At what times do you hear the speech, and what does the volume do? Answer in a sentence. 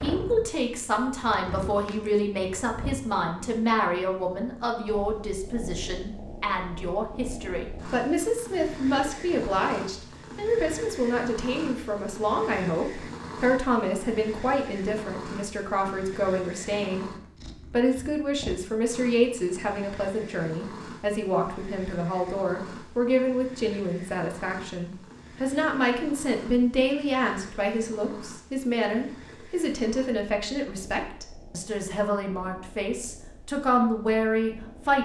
You can hear the speech from 0.0 to 17.1 s, at a steady volume; and from 17.7 to 35.0 s, at a steady volume.